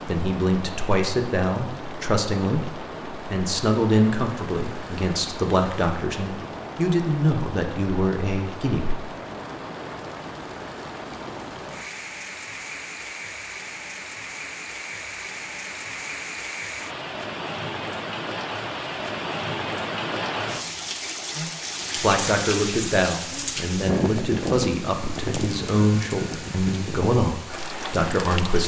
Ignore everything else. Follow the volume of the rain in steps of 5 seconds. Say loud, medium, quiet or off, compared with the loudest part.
medium, medium, medium, loud, loud, loud.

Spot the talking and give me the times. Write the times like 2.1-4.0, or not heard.
0.1-9.0, 21.4-28.6.